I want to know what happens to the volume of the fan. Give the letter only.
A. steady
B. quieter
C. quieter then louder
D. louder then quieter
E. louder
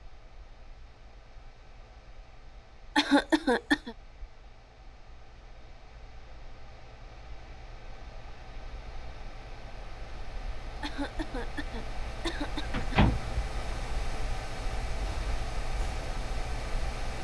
E.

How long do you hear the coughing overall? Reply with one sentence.
The coughing can be heard for 3 seconds in total.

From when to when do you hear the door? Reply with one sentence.
You can hear the door from 12.7 to 13.4 s.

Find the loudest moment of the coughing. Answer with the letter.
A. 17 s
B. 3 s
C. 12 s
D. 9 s
B.